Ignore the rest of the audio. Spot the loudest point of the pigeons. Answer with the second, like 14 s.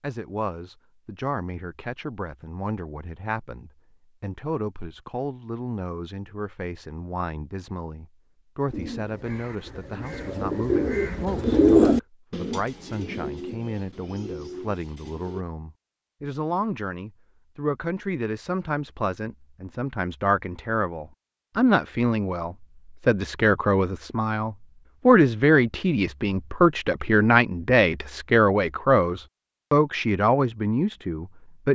12 s.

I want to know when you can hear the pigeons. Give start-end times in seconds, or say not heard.
8.7-15.4.